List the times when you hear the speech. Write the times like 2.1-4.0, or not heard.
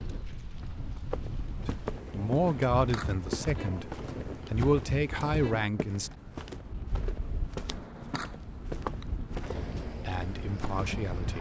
1.6-6.1, 9.8-11.3.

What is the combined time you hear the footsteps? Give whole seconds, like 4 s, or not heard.
10 s.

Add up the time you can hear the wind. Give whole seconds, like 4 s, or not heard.
11 s.